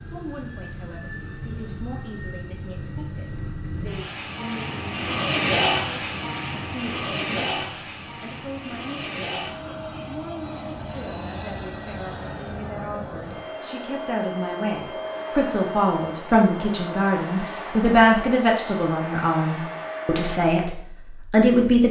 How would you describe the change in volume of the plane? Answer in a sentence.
The volume of the plane goes up, then down.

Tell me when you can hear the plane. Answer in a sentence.
The plane can be heard from 0.0 to 20.4 s.